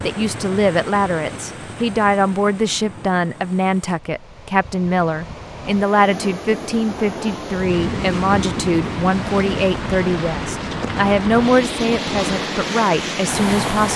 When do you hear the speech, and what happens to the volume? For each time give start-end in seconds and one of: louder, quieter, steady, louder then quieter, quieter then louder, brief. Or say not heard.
0.0-13.9 steady.